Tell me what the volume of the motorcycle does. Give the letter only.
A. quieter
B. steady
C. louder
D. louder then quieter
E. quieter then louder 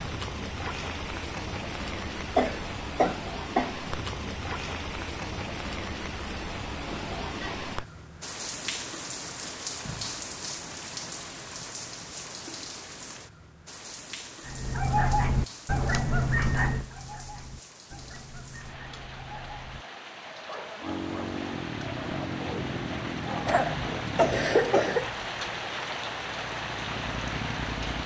E.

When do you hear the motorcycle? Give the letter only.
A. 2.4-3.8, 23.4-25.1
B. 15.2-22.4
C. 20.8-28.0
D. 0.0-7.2
C.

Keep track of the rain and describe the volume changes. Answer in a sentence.
The loudness of the rain goes down, then up.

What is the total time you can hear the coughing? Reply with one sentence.
The coughing can be heard for 3 seconds in total.